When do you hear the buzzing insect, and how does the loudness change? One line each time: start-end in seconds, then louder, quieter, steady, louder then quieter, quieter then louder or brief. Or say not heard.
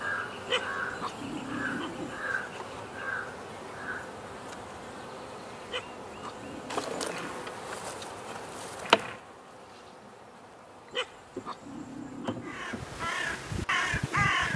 0.0-14.5 louder then quieter.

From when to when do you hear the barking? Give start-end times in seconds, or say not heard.
0.5-2.2, 5.7-7.5, 10.9-12.7.